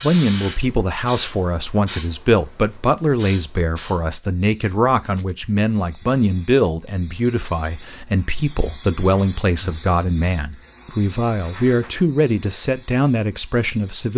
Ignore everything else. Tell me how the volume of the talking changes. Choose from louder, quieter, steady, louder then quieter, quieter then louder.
steady.